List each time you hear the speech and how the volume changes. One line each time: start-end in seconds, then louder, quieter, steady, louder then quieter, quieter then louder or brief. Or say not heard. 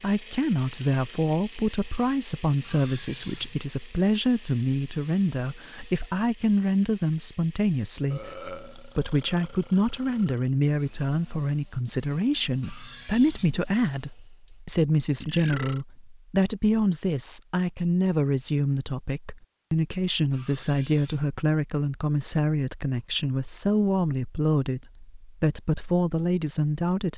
0.0-27.1 steady.